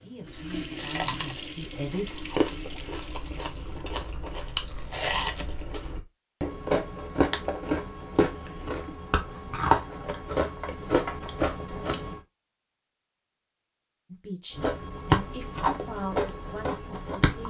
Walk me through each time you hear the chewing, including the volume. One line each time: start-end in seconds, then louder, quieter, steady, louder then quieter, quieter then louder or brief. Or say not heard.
0.2-12.2 louder
14.5-17.4 brief.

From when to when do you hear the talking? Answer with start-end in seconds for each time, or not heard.
0.0-2.2, 14.1-17.4.